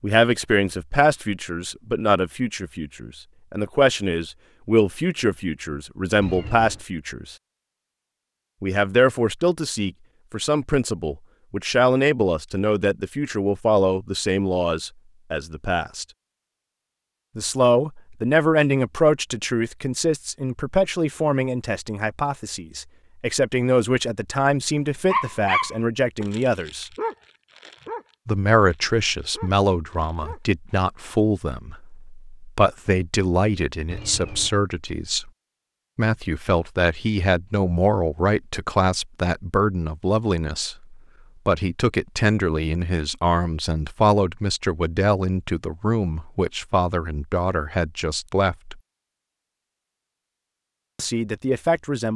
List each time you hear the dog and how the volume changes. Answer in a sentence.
You can hear the dog from 25.1 to 30.6 s, getting quieter then louder.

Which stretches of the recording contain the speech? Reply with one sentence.
The speech can be heard from 0.0 to 7.3 s, from 8.6 to 16.1 s, from 17.4 to 26.9 s, from 28.2 to 35.3 s, from 36.0 to 48.8 s and from 51.0 to 52.1 s.